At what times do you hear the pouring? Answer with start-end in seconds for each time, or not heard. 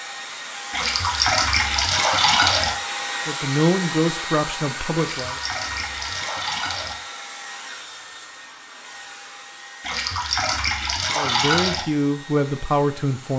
0.7-2.7, 5.0-7.0, 9.8-11.8.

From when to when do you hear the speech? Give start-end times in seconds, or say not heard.
3.2-5.3, 11.2-13.3.